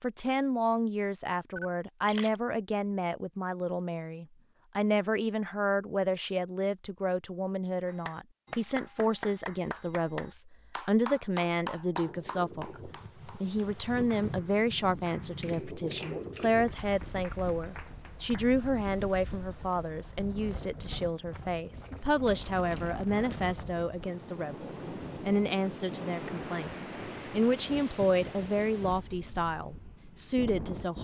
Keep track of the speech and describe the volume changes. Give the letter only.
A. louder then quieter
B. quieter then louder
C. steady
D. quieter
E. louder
C.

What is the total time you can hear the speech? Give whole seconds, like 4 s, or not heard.
31 s.